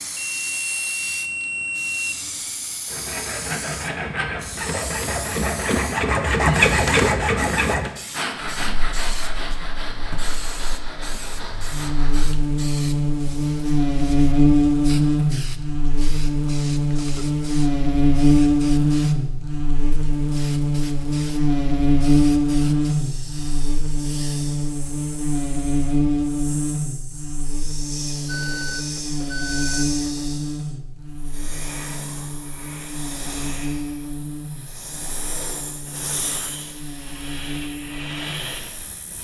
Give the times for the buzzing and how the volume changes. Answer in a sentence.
You can hear the buzzing from 8.4 to 39.0 s, getting quieter.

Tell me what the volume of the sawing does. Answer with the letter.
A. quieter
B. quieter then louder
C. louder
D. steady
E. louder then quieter
E.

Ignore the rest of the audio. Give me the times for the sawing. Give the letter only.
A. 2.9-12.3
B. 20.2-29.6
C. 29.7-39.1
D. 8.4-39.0
A.